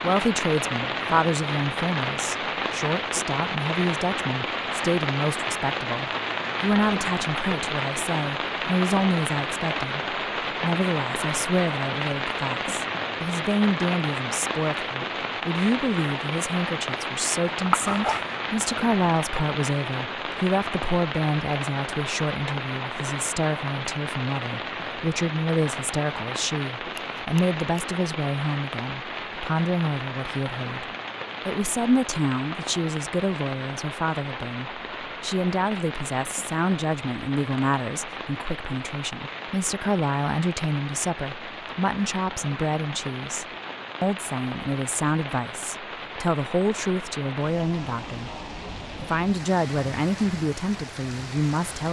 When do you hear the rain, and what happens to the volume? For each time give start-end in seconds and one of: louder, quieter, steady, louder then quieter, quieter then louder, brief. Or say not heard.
0.0-51.8 quieter.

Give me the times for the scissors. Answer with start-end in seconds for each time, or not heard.
17.4-18.4, 26.9-27.6.